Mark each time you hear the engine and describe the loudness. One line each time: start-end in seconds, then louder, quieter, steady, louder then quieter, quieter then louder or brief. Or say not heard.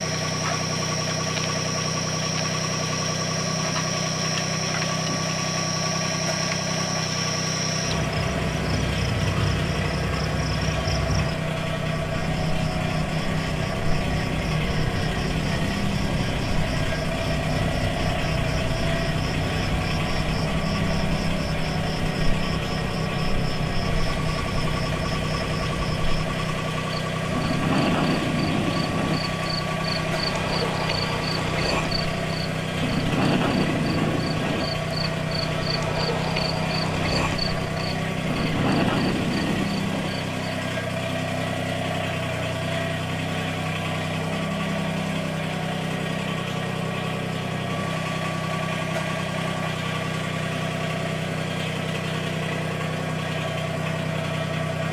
0.0-54.8 steady.